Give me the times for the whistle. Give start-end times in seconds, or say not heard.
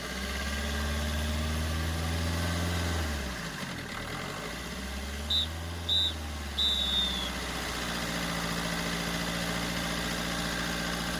5.3-7.2.